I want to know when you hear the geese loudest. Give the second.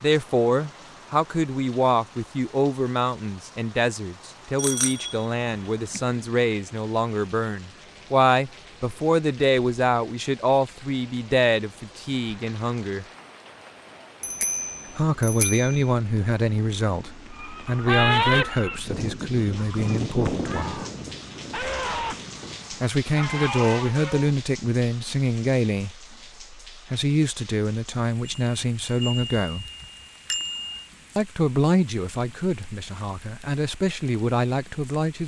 18 s.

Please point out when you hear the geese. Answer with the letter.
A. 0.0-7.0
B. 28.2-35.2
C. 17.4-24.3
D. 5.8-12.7
C.